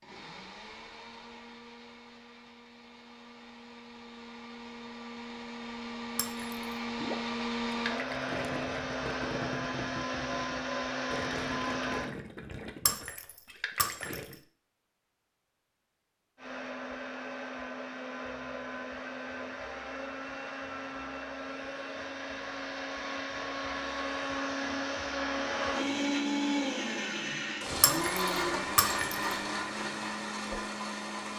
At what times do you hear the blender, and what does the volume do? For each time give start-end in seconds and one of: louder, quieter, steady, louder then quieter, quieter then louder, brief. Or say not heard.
0.0-12.1 louder
16.4-31.3 louder.